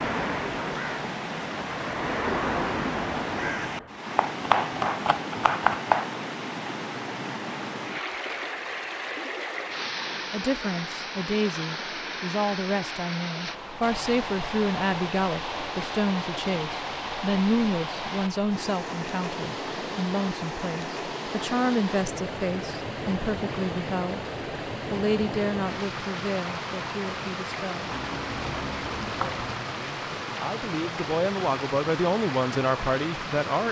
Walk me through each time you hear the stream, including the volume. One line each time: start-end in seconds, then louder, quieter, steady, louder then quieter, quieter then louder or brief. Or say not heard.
0.0-33.6 steady.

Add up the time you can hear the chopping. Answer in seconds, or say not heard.
4 s.